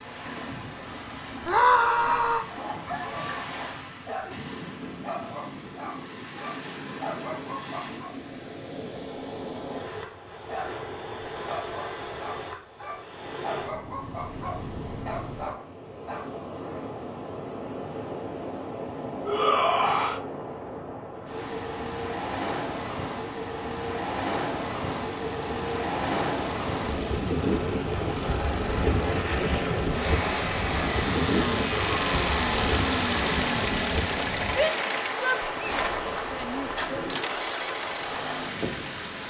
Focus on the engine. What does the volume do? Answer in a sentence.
The loudness of the engine goes up, then down.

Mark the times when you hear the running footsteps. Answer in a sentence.
You can't hear the running footsteps here.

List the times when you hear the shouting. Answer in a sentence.
The shouting can be heard from 1.4 to 2.5 s, from 19.2 to 20.2 s and from 34.5 to 37.0 s.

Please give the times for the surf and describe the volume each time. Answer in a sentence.
You can hear the surf from 0.0 to 39.2 s, getting louder.